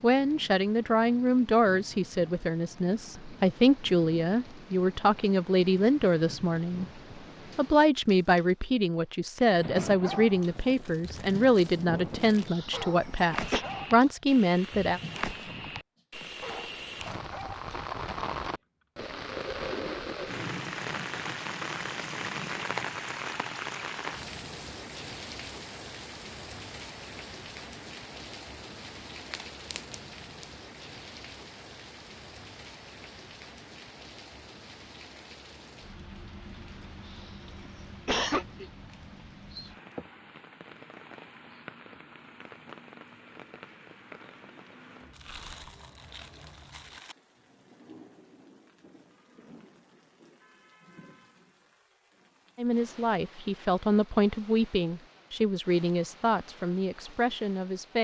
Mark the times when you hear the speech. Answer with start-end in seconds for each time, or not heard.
0.0-6.8, 7.5-15.0, 52.5-57.9.